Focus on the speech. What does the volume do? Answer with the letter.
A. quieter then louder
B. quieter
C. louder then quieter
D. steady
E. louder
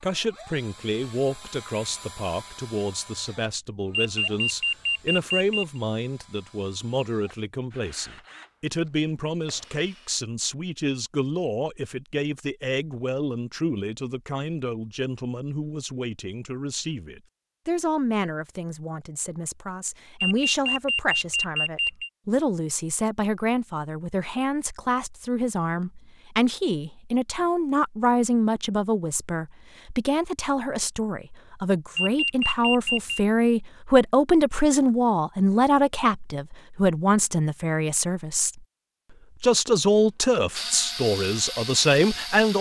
E.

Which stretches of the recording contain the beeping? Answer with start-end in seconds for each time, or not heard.
3.9-5.8, 20.2-22.1, 31.9-33.2.